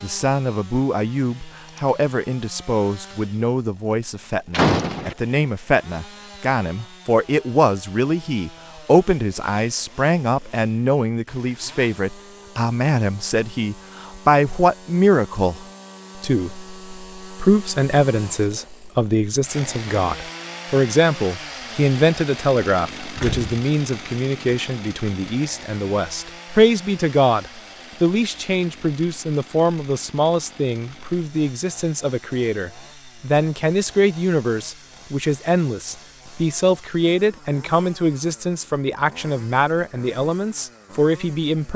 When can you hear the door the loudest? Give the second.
5 s.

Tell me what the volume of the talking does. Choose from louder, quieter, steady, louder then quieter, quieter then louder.
steady.